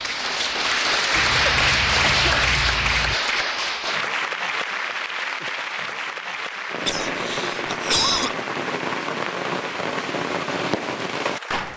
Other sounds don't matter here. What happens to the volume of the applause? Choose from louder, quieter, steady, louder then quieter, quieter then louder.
quieter.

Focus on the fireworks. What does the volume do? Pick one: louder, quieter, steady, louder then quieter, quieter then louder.
steady.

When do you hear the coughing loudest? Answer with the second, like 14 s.
8 s.